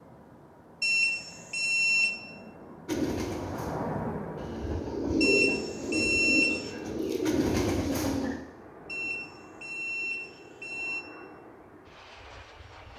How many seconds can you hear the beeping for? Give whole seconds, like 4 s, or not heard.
5 s.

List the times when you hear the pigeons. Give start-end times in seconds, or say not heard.
2.9-8.4.